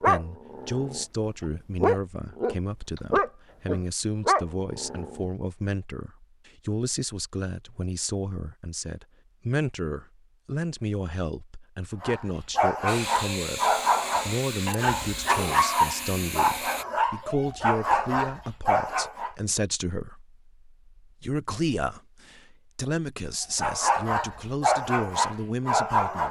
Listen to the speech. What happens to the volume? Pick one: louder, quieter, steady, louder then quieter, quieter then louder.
steady.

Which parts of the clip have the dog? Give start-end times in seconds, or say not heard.
0.0-5.2, 12.0-19.3, 23.6-26.2.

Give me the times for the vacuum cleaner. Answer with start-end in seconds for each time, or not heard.
12.8-16.9.